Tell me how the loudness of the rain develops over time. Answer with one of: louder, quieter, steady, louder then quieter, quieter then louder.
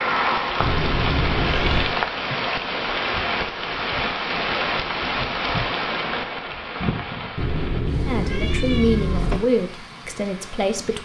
quieter.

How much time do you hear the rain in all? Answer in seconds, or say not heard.
11 s.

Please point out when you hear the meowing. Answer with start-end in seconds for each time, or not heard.
0.6-1.9, 7.3-9.4.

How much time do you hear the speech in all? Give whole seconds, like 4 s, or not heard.
3 s.